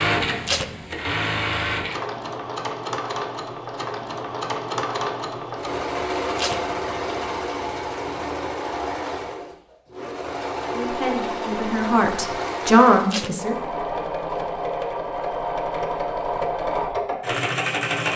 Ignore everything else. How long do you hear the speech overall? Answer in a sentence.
The speech can be heard for 3 seconds in total.